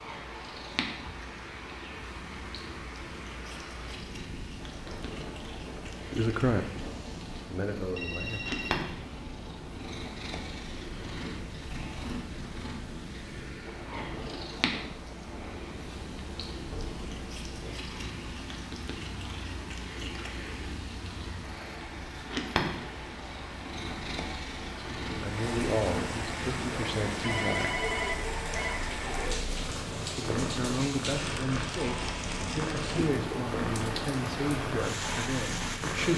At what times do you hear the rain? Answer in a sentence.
The rain can be heard from 0.0 to 36.1 s.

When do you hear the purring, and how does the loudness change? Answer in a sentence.
You can hear the purring from 0.0 to 36.1 s, getting louder.